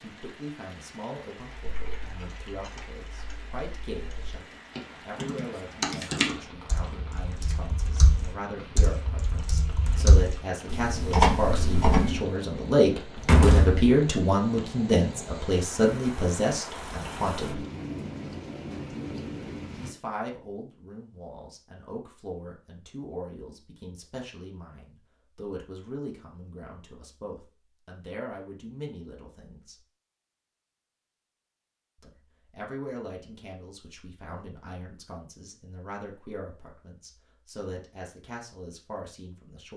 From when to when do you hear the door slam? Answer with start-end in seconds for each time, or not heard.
13.2-13.8.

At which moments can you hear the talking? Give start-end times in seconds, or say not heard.
0.0-17.6, 19.8-29.8, 32.0-39.7.